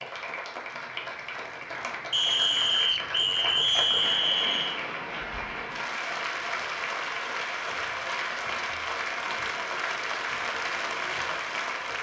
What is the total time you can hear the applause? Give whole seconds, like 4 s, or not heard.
12 s.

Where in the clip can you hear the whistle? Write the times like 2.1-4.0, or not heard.
2.1-4.8.